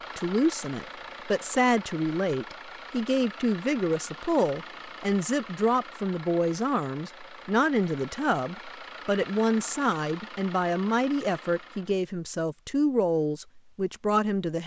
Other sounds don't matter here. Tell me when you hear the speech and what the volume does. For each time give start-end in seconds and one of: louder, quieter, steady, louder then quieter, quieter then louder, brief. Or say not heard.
0.1-14.6 steady.